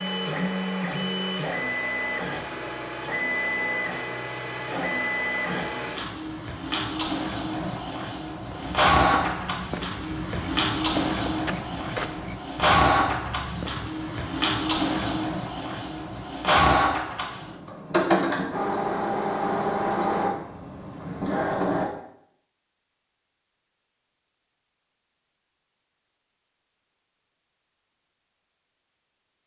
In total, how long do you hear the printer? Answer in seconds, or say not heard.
22 s.